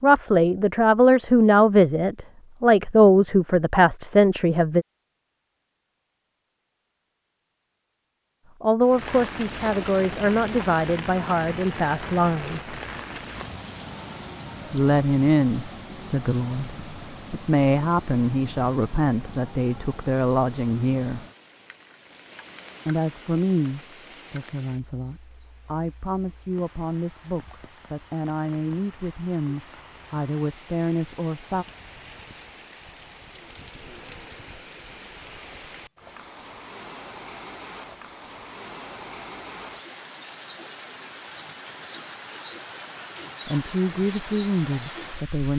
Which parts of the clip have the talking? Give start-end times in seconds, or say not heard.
0.0-4.8, 8.6-12.8, 14.7-21.2, 22.9-31.6, 43.5-45.5.